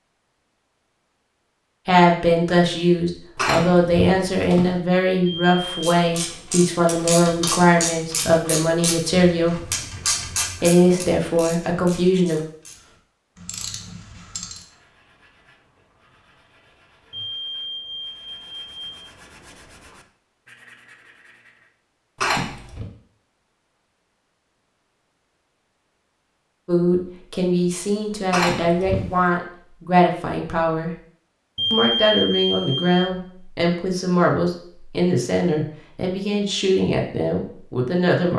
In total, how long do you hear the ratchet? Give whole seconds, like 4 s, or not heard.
9 s.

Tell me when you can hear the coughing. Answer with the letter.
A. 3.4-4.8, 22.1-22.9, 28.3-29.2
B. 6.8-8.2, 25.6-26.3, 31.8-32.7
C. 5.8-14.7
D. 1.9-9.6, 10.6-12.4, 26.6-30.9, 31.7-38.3
A.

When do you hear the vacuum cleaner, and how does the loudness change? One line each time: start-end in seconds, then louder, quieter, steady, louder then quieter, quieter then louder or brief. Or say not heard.
not heard.